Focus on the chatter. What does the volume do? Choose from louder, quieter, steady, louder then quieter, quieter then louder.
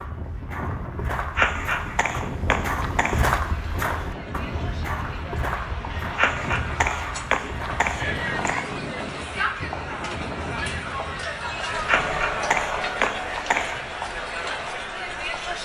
louder.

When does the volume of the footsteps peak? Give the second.
3 s.